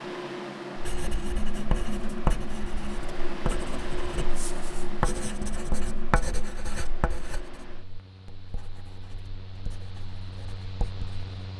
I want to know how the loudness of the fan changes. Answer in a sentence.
The loudness of the fan goes down.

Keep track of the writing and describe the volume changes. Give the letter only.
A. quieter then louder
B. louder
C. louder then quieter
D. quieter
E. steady
D.